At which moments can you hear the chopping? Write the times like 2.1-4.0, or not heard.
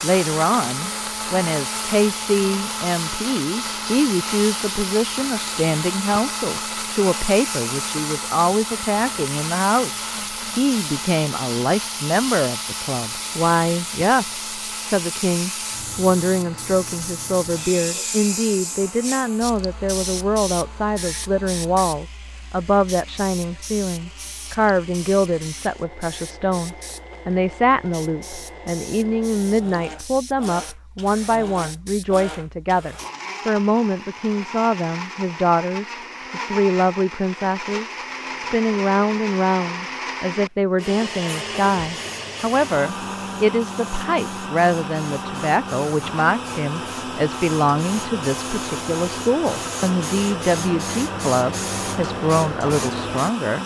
not heard.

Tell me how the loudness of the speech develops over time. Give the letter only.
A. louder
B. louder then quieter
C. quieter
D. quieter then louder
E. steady
E.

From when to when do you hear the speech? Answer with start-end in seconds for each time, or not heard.
0.0-53.6.